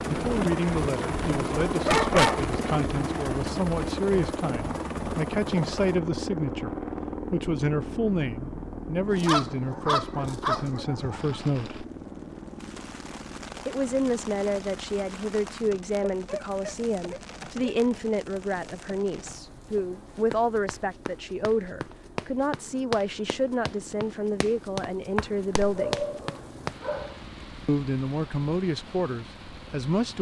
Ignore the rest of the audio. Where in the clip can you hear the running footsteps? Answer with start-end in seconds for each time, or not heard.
19.7-26.8.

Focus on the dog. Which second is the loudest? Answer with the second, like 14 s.
2 s.